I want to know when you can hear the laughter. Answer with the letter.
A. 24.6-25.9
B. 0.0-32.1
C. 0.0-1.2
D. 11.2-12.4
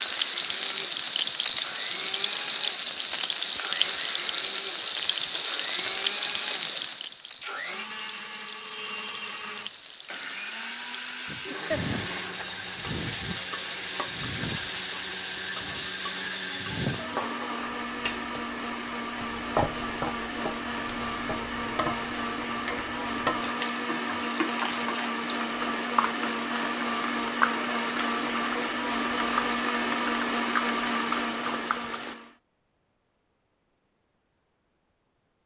D.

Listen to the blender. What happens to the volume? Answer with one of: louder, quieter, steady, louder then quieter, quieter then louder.
louder.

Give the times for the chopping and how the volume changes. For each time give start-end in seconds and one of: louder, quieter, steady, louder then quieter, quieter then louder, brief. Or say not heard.
not heard.